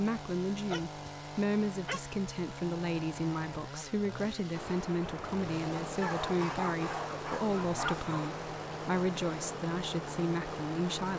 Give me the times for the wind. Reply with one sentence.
You can hear the wind from 4.5 to 11.1 s.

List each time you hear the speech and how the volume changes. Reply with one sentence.
The speech can be heard from 0.0 to 11.1 s, at a steady volume.